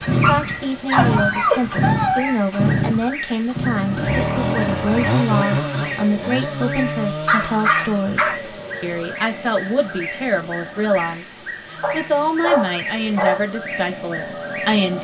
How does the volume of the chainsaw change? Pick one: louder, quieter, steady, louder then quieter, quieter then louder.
quieter.